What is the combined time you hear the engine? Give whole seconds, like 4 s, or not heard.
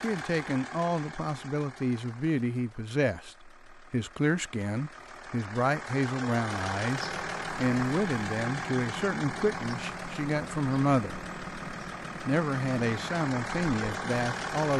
15 s.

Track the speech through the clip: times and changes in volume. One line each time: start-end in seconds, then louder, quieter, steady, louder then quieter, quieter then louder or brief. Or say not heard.
0.0-11.2 steady
12.2-14.7 brief.